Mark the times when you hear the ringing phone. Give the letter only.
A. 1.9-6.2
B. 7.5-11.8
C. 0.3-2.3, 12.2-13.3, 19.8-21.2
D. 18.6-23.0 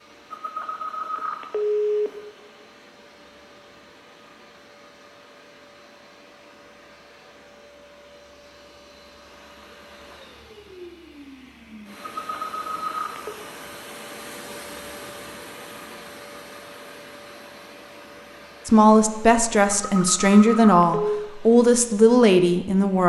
C.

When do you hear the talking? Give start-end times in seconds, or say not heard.
18.6-23.0.